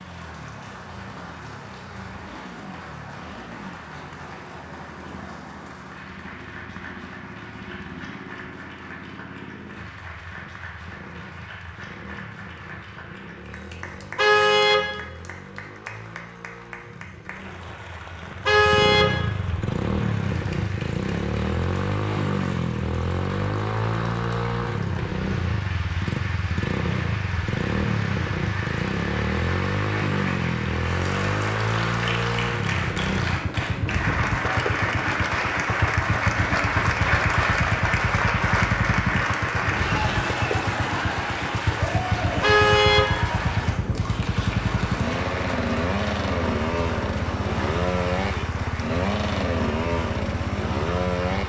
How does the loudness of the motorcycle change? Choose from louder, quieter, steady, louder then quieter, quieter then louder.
louder.